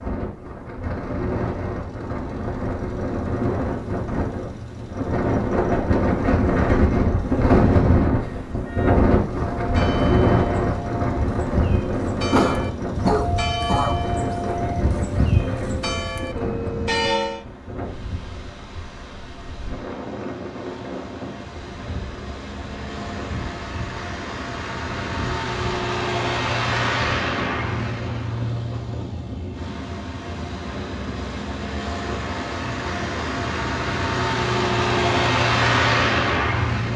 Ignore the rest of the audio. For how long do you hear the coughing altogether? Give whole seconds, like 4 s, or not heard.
2 s.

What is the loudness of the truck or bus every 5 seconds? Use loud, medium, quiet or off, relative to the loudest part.
quiet, quiet, quiet, quiet, quiet, medium, medium, loud.